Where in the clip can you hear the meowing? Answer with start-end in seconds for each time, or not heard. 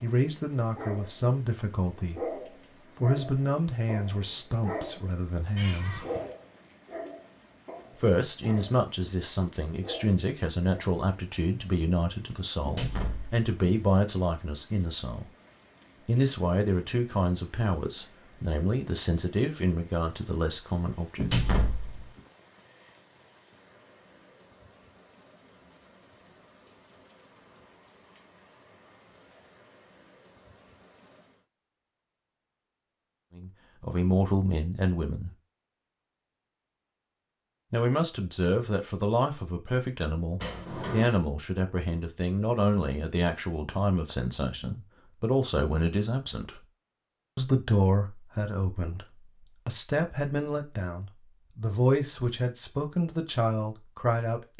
5.5-6.3.